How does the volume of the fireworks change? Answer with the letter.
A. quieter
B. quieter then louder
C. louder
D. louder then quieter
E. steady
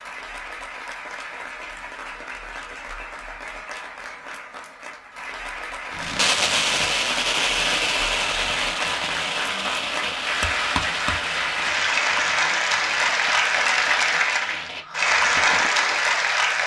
A.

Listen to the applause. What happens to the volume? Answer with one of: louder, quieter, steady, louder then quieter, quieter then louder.
louder.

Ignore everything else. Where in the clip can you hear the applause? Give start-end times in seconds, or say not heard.
0.0-16.6.